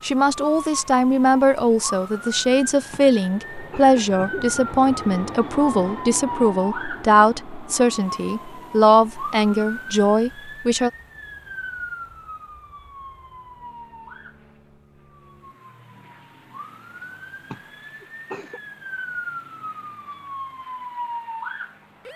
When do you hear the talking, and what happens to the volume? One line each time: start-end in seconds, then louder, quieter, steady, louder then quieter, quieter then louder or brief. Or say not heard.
0.0-10.9 steady.